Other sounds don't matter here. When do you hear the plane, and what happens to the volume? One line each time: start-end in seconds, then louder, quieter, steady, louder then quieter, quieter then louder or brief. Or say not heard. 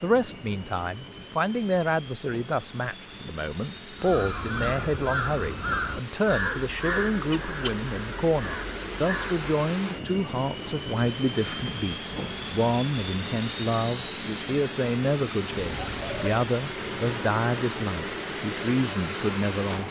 0.0-19.8 louder.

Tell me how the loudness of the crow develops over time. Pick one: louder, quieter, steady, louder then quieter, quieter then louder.
quieter.